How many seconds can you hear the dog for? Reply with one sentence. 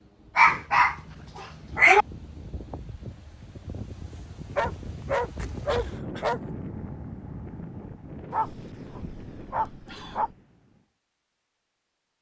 The dog can be heard for 6 seconds in total.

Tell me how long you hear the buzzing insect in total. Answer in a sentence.
The buzzing insect can't be heard in this clip.